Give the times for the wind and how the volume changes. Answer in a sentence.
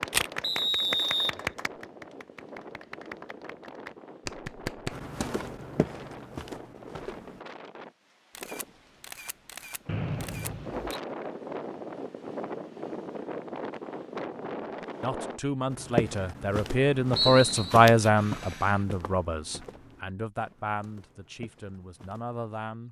You can hear the wind from 0.0 to 15.4 s, getting louder.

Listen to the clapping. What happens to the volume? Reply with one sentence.
The volume of the clapping goes down, then up.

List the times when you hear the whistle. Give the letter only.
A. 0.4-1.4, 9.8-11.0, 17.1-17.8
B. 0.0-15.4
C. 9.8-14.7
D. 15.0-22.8
A.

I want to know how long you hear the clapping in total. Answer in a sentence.
You can hear the clapping for 5 seconds altogether.